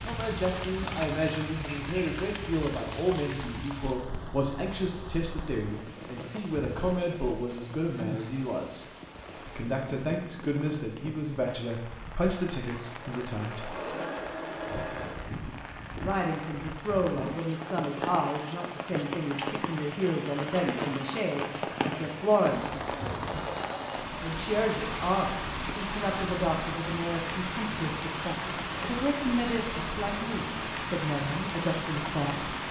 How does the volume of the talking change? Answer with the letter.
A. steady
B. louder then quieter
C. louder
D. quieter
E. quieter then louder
A.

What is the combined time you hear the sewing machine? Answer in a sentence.
You can hear the sewing machine for 2 seconds altogether.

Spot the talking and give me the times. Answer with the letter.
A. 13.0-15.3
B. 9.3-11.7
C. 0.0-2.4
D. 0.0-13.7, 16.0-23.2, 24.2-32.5
D.